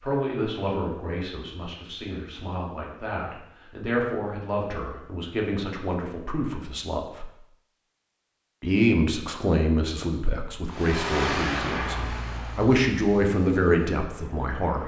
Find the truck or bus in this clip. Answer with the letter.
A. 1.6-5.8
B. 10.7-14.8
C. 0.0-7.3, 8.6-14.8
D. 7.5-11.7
B.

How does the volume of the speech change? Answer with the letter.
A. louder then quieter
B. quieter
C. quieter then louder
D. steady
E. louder
E.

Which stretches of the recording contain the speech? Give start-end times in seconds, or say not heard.
0.0-7.3, 8.6-14.8.